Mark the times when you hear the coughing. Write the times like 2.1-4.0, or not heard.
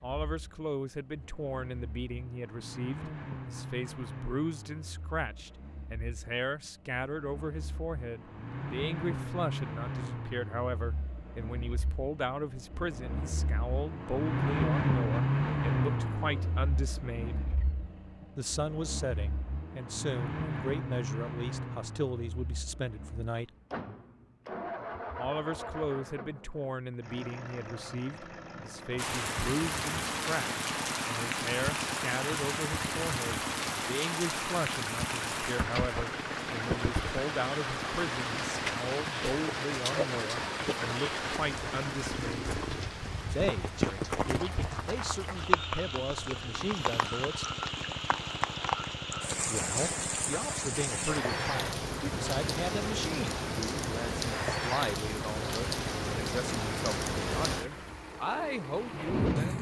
not heard.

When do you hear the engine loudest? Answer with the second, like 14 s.
15 s.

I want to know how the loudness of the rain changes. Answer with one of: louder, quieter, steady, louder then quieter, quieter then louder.
steady.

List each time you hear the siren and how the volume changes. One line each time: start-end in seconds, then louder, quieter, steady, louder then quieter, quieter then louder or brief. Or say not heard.
not heard.